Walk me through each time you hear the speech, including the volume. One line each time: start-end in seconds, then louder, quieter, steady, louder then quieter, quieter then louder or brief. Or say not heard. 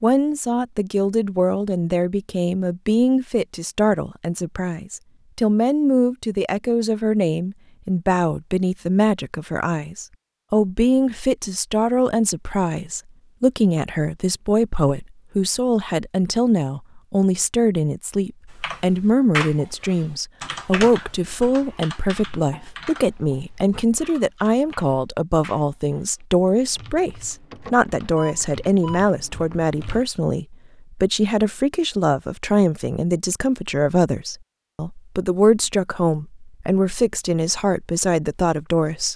0.0-39.1 steady.